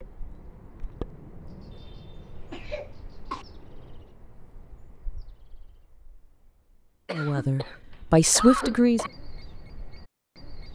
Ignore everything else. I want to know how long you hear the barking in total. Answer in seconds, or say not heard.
not heard.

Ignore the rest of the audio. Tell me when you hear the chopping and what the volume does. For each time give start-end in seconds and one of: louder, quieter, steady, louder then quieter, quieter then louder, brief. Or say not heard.
not heard.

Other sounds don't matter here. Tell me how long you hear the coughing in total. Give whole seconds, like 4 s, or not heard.
4 s.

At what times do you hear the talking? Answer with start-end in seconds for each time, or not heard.
7.1-9.1.